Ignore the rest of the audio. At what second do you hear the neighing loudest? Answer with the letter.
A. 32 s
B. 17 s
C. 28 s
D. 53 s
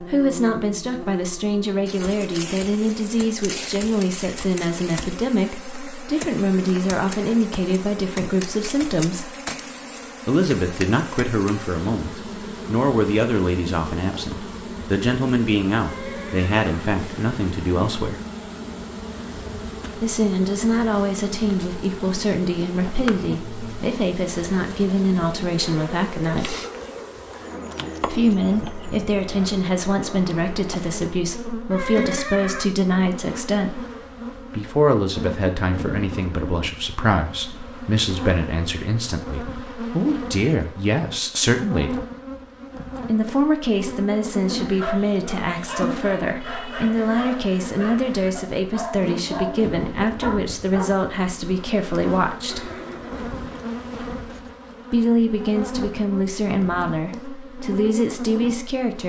A.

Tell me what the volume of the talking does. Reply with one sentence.
The volume of the talking stays about the same.